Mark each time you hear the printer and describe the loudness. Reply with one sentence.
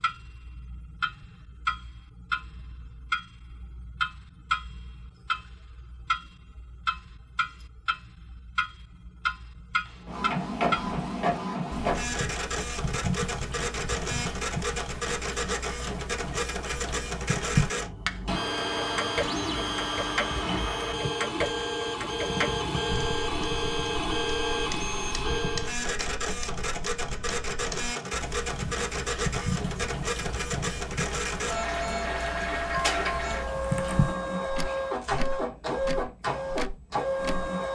You can hear the printer from 9.8 to 37.7 s, at a steady volume.